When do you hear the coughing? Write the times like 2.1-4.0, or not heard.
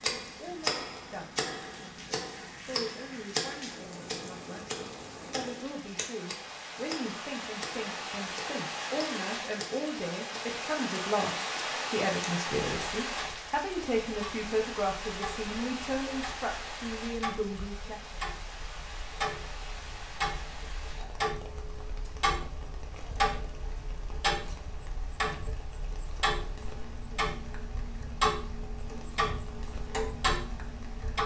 not heard.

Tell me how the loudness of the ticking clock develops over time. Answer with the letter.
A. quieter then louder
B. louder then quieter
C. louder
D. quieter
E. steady
A.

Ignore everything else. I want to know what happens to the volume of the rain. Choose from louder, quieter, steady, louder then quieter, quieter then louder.
louder then quieter.